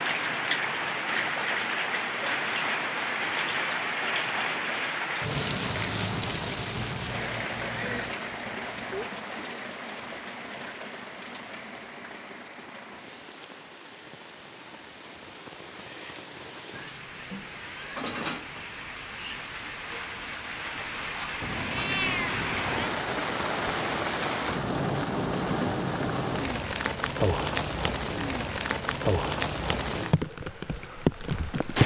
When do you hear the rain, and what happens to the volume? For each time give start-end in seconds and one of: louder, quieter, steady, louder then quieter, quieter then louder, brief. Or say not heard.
0.0-31.8 quieter then louder.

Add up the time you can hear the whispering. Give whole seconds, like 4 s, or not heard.
not heard.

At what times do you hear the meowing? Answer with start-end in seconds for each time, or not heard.
6.8-9.1, 16.8-18.6, 21.4-22.9.